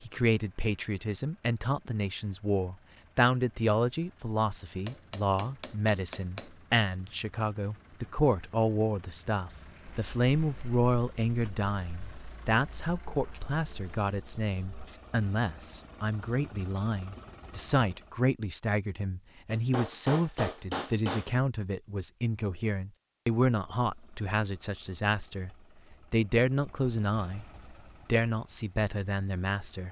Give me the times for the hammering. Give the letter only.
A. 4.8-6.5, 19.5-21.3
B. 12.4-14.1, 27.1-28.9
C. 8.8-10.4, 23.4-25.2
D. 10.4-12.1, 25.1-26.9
A.